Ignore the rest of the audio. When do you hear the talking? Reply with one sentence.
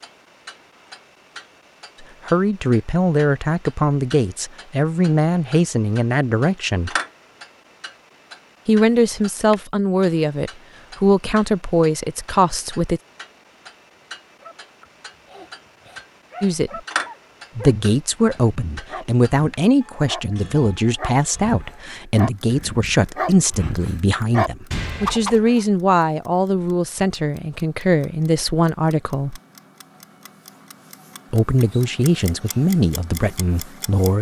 The talking can be heard from 2.0 to 7.0 s, from 8.7 to 13.0 s, from 16.4 to 16.8 s, from 17.6 to 29.4 s and from 31.3 to 34.1 s.